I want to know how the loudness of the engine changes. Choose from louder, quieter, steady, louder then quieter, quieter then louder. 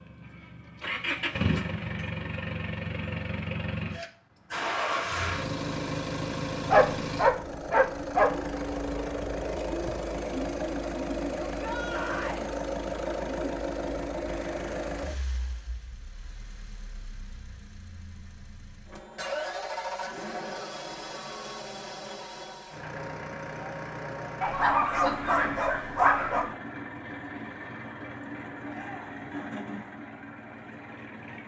quieter.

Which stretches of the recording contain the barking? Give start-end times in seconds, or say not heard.
6.7-8.3, 24.4-26.5.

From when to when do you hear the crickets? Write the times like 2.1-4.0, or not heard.
not heard.